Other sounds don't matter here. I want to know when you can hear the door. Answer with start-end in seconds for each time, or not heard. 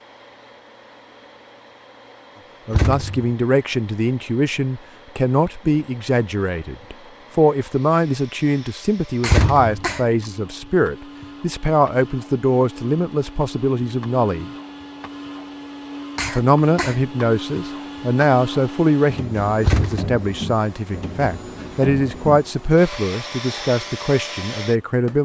2.7-3.3, 9.2-9.8, 19.6-20.1.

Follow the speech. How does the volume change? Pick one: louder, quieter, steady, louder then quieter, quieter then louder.
steady.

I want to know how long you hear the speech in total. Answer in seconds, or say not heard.
21 s.